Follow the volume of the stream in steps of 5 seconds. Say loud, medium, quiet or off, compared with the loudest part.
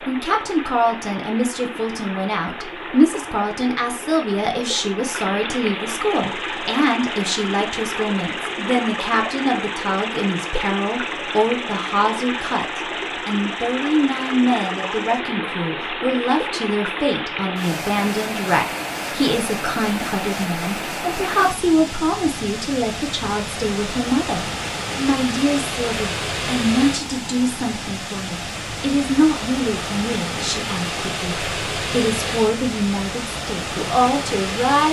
medium, loud, loud, loud, loud, loud, loud.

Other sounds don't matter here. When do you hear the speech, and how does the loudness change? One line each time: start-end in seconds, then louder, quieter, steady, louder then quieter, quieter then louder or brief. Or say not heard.
0.1-34.8 steady.